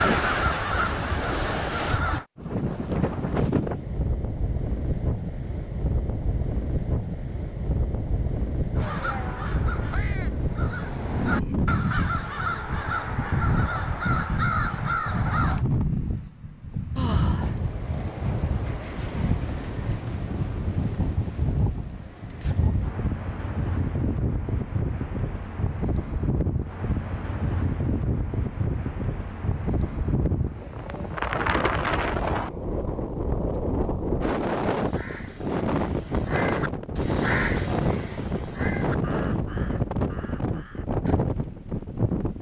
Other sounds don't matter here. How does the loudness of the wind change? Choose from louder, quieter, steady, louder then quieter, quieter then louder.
steady.